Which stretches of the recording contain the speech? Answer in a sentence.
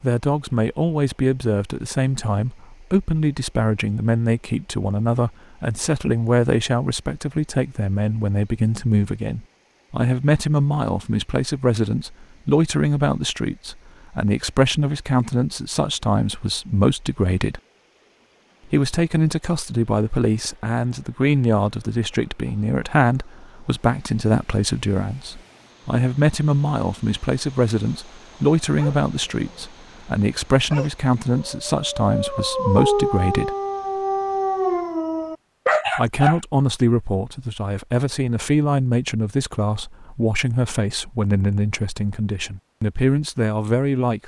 You can hear the speech from 0.0 to 17.6 s, from 18.7 to 33.5 s and from 36.0 to 44.2 s.